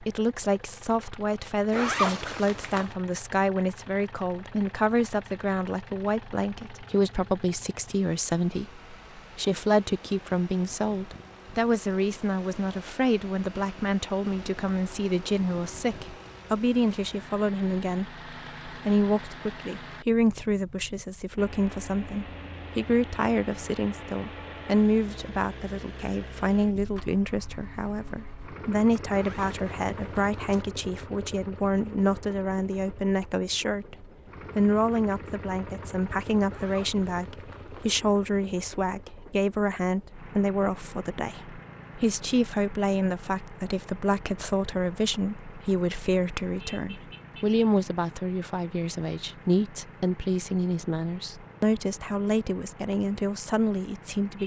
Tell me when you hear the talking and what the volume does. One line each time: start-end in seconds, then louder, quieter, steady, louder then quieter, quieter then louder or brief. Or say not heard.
0.0-54.4 steady.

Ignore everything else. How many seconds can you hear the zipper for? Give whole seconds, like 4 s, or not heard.
4 s.